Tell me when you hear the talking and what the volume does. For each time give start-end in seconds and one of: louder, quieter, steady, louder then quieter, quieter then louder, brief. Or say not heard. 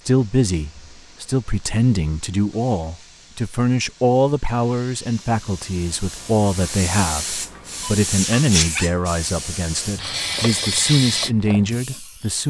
0.1-12.4 steady.